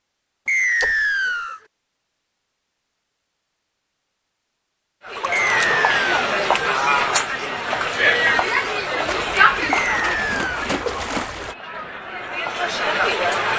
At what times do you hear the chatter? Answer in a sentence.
You can hear the chatter from 5.0 to 13.5 s.